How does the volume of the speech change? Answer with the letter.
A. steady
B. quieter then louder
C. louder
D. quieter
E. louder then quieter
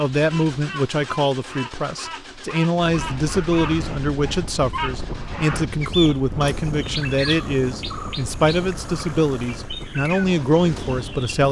A.